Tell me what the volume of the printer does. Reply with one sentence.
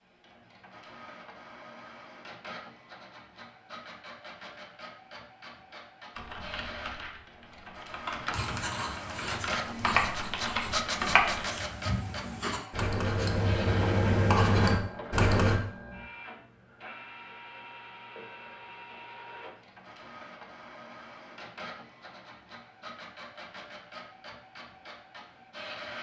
The volume of the printer goes up, then down.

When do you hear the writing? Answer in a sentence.
You can hear the writing from 8.3 to 15.6 s.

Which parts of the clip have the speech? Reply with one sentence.
The speech can't be heard in this clip.